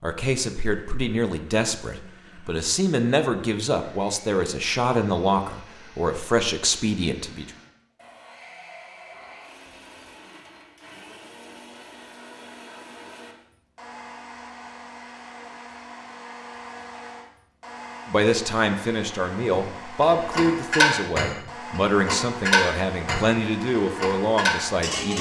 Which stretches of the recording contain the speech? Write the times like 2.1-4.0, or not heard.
0.0-7.5, 18.1-25.1.